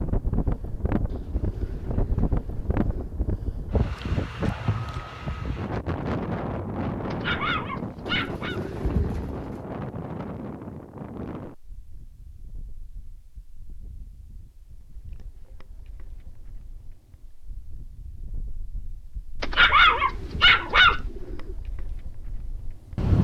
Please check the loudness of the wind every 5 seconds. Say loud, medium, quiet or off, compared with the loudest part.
loud, loud, medium, quiet, loud.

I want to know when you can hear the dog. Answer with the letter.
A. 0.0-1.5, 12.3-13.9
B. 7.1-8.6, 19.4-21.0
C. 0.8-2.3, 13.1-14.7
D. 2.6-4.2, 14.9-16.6
B.